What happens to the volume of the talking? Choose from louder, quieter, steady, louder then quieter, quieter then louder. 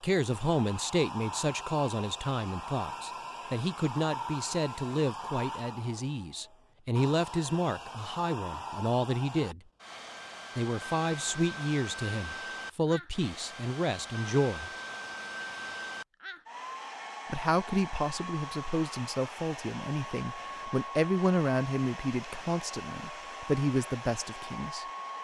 steady.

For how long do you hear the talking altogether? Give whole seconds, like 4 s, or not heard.
21 s.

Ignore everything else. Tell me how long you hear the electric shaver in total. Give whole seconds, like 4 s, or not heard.
not heard.